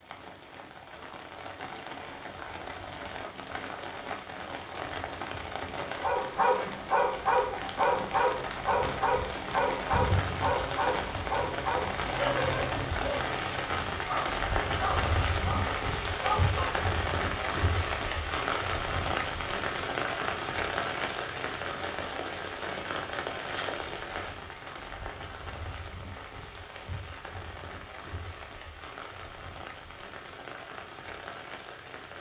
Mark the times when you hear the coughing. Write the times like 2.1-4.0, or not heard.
not heard.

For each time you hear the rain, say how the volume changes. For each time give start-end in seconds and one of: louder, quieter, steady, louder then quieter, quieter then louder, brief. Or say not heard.
0.0-32.1 louder then quieter.